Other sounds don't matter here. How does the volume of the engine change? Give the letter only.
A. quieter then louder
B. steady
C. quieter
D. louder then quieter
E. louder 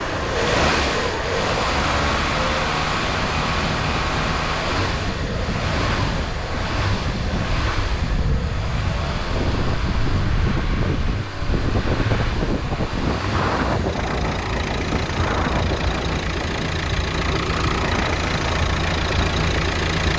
A.